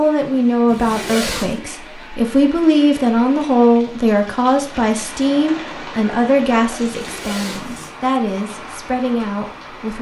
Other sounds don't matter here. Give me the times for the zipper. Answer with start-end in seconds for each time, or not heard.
0.7-1.6, 6.8-7.9.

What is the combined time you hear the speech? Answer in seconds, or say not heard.
10 s.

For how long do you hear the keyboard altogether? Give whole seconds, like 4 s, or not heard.
not heard.